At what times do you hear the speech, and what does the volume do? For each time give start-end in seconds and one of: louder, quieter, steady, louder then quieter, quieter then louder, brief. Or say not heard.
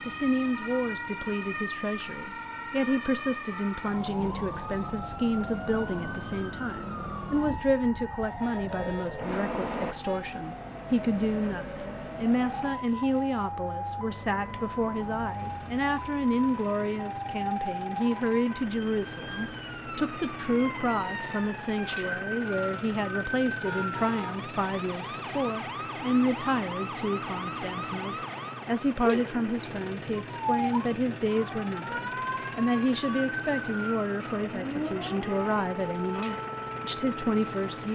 0.1-37.9 steady.